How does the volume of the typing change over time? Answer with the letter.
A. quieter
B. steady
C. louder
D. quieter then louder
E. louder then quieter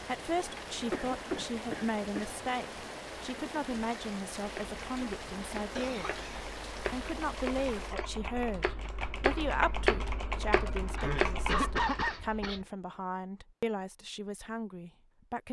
C.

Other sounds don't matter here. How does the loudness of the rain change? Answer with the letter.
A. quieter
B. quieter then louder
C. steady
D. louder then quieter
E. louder
C.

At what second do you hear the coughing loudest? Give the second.
12 s.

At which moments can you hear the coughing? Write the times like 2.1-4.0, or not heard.
0.9-2.3, 5.8-6.5, 10.9-12.7.